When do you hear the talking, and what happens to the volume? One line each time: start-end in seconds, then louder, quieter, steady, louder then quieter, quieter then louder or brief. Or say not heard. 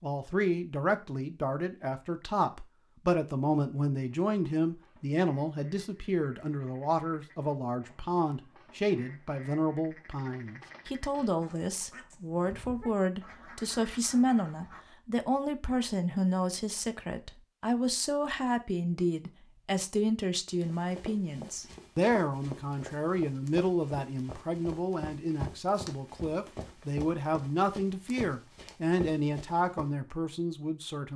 0.0-31.1 steady.